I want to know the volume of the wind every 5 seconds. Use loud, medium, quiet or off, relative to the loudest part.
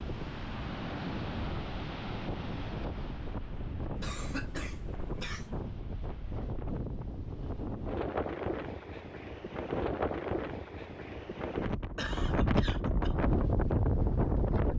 medium, medium, loud.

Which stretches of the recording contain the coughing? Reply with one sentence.
The coughing can be heard from 4.0 to 5.5 s and from 11.9 to 13.2 s.